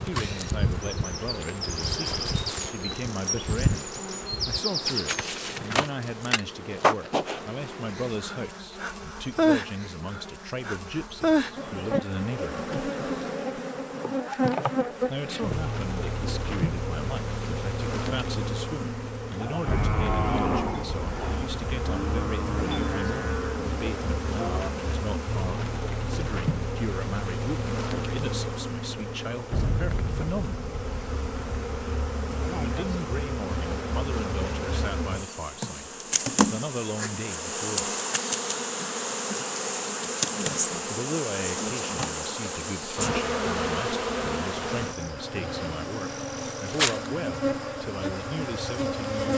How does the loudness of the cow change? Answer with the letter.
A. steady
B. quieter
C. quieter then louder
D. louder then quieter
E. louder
B.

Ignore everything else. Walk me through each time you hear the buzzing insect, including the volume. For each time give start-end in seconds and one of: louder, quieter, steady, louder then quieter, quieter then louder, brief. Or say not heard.
0.0-49.3 steady.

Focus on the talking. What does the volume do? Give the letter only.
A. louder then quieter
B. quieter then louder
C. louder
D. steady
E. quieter
D.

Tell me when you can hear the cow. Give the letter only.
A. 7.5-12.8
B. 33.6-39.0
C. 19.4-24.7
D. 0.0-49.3
C.